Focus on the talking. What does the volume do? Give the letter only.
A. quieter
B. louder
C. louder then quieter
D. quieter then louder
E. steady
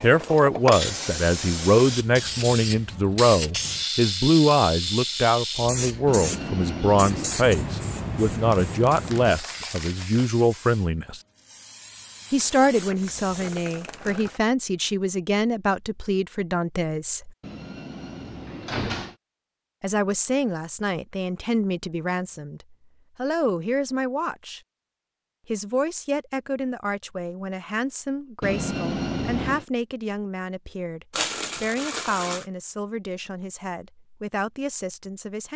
A.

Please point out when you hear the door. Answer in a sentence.
You can hear the door from 6.0 to 7.4 s, from 17.4 to 19.1 s and from 28.4 to 29.6 s.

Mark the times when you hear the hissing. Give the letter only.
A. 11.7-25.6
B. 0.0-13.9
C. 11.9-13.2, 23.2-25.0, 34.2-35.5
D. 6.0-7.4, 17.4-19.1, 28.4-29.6
B.